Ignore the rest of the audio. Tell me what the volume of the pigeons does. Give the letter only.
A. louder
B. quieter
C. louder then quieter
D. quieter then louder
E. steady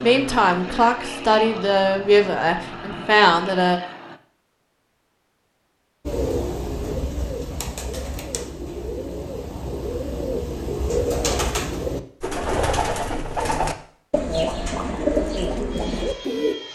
A.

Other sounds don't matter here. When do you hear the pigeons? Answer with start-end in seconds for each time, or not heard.
6.0-16.6.